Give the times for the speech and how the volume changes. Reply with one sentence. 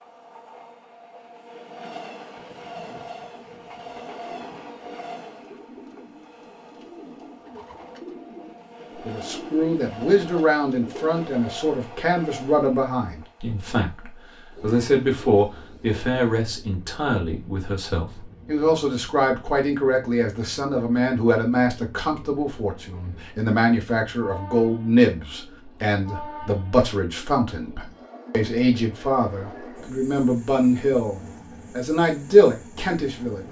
The speech can be heard from 9.1 to 33.4 s, at a steady volume.